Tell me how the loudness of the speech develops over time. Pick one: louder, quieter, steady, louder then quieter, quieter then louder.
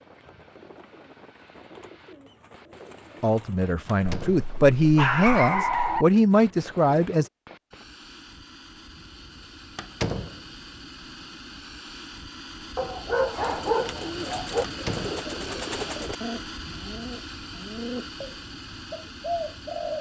louder.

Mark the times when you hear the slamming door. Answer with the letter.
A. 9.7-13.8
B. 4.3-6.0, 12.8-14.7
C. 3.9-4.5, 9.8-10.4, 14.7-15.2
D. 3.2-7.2
C.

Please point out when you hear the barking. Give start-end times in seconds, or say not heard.
4.3-6.0, 12.8-14.7.